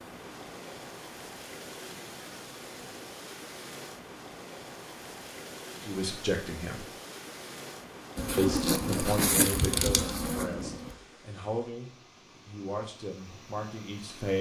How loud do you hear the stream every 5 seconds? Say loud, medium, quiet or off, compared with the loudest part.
loud, loud, medium.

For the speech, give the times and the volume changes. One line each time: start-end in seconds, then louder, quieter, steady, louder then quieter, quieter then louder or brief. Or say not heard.
5.8-6.8 brief
8.3-14.3 quieter.